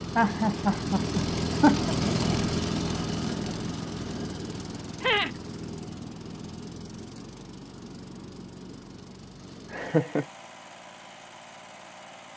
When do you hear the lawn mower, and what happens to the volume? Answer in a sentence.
You can hear the lawn mower from 0.0 to 12.3 s, getting quieter.